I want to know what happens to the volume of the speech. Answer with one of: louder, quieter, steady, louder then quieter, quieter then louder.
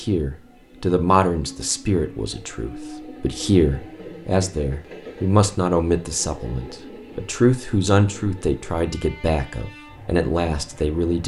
steady.